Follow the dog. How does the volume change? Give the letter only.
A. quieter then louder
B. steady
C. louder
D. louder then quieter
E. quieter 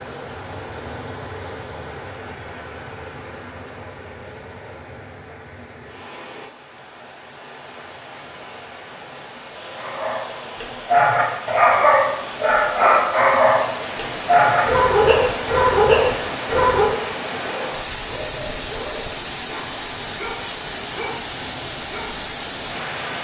E.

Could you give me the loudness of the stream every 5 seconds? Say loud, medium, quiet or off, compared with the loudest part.
medium, medium, loud, loud, loud.